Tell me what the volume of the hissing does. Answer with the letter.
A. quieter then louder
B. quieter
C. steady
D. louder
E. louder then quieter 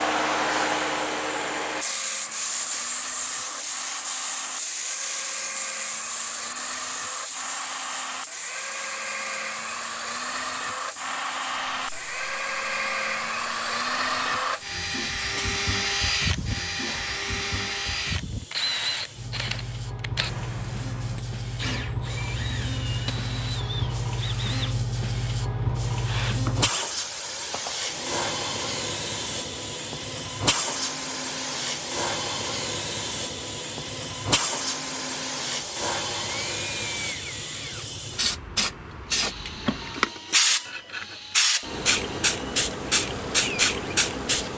A.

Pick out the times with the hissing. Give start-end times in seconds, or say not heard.
0.0-44.5.